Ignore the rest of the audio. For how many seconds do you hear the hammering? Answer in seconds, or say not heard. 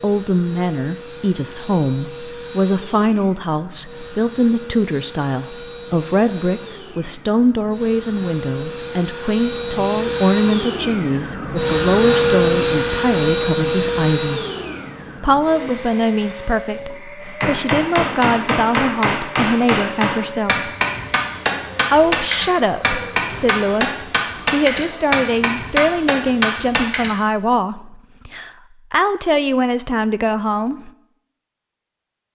10 s.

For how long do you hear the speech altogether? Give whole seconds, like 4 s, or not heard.
29 s.